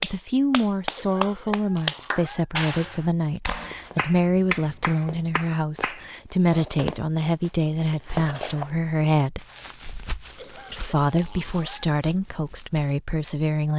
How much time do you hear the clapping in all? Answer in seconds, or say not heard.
6 s.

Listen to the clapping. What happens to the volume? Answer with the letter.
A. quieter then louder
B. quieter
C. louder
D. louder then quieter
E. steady
B.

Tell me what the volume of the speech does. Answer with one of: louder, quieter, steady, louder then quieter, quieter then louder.
steady.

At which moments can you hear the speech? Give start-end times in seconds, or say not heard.
0.0-9.4, 10.7-13.7.